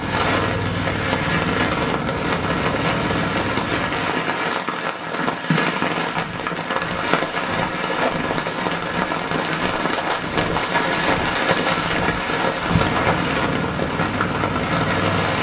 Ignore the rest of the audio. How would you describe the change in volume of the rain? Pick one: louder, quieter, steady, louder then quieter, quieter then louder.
steady.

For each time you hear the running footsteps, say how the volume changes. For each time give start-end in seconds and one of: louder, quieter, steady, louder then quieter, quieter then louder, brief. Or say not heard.
5.2-13.2 louder.